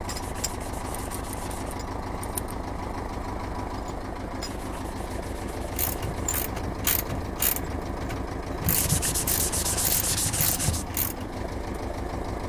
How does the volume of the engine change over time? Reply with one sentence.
The loudness of the engine stays about the same.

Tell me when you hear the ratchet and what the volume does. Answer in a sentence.
The ratchet can be heard from 5.5 to 11.3 s, at a steady volume.